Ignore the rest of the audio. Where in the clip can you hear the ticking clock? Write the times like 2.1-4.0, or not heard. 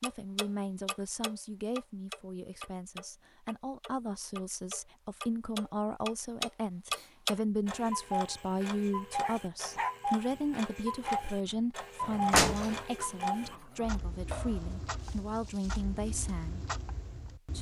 0.0-17.5.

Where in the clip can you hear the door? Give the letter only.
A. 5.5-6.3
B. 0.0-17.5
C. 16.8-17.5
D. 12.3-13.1
D.